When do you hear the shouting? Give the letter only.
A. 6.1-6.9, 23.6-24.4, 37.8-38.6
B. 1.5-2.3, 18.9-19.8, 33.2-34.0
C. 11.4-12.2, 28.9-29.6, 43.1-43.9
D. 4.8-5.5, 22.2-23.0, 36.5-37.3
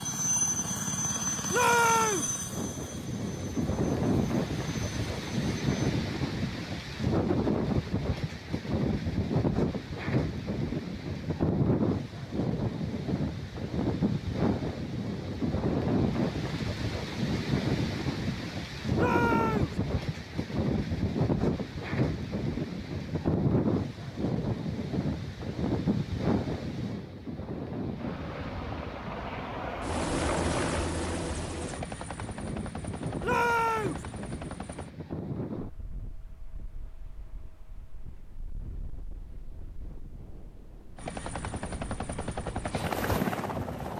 B.